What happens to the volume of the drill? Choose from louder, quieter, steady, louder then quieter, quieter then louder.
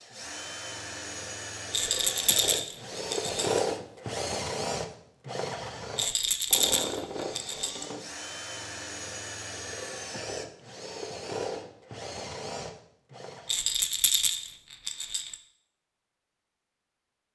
louder then quieter.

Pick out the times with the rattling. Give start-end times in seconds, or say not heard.
1.7-3.5, 6.0-7.8, 13.4-15.3.